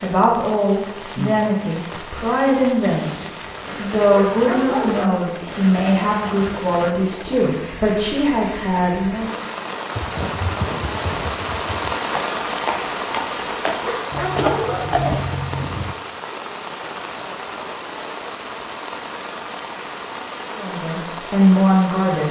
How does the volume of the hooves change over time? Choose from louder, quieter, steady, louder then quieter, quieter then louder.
louder.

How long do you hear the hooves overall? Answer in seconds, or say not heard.
6 s.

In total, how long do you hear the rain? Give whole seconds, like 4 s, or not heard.
22 s.